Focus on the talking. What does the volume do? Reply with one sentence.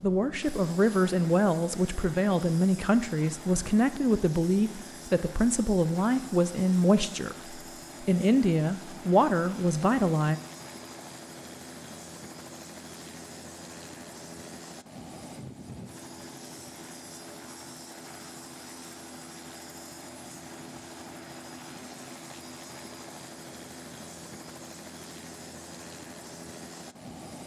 The loudness of the talking stays about the same.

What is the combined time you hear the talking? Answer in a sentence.
You can hear the talking for 10 seconds altogether.